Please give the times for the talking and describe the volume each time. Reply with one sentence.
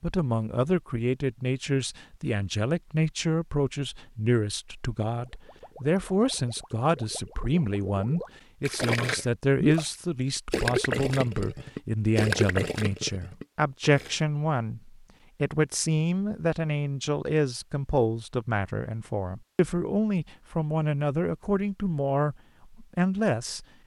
The talking can be heard from 0.0 to 23.6 s, at a steady volume.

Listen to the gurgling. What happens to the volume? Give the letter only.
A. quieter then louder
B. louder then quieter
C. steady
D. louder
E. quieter
D.